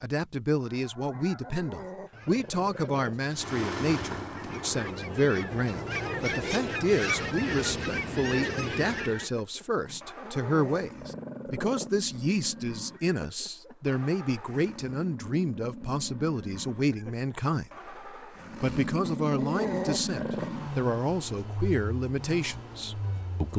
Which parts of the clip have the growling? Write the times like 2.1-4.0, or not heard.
1.2-3.1, 9.8-11.9, 19.0-20.5.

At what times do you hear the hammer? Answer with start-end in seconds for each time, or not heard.
not heard.